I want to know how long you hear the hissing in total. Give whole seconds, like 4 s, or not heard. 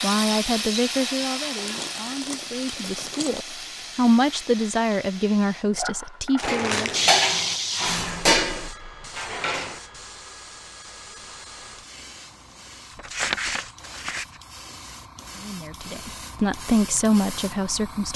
18 s.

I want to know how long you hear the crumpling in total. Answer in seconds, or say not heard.
4 s.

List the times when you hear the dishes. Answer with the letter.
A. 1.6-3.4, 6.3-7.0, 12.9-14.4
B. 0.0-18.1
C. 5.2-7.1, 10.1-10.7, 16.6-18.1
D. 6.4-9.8
D.